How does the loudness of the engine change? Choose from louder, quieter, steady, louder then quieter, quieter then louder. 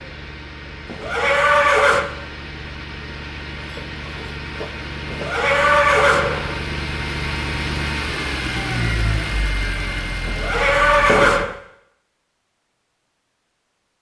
louder.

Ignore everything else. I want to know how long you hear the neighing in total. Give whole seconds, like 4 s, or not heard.
4 s.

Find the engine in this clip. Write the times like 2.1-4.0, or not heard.
0.0-11.4.